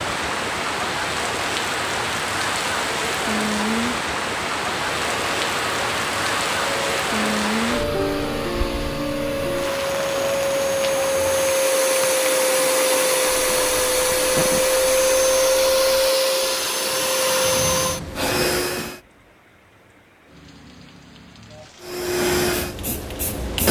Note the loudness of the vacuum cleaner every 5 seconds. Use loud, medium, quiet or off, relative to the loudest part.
off, medium, loud, loud, loud.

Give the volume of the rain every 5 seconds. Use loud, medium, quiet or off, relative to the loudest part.
loud, loud, medium, quiet, quiet.